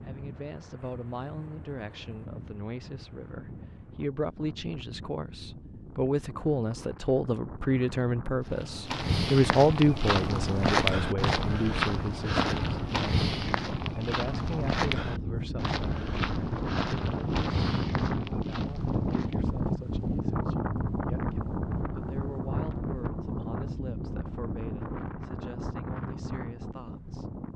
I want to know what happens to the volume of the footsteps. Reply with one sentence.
The loudness of the footsteps goes down.